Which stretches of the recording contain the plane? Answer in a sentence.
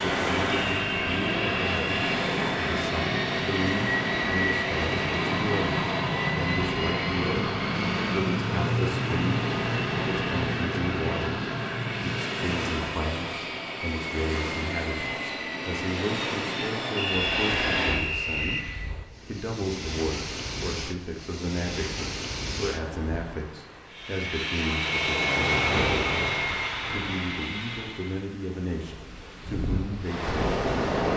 The plane can be heard from 0.0 to 18.9 s and from 23.9 to 28.2 s.